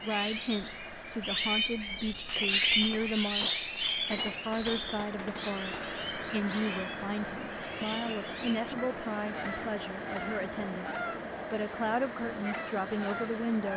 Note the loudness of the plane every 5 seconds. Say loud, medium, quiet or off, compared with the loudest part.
medium, loud, loud.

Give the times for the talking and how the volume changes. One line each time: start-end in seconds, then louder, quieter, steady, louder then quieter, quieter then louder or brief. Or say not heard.
0.0-13.7 steady.